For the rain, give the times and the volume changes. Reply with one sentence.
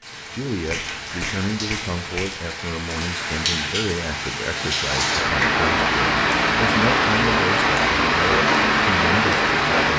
You can hear the rain from 0.0 to 9.9 s, getting louder.